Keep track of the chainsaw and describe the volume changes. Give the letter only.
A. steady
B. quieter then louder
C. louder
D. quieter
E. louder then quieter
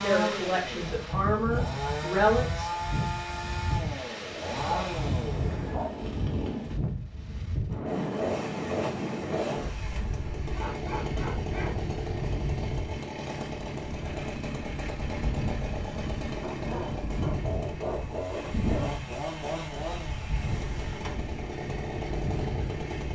A.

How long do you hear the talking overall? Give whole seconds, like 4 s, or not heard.
3 s.